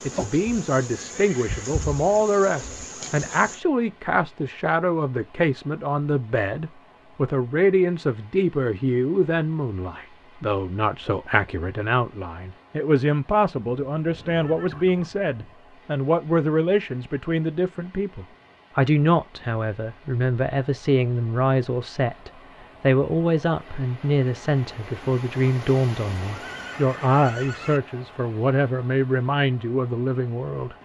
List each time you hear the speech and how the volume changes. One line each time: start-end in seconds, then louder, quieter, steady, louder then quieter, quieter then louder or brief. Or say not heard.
0.0-30.7 steady.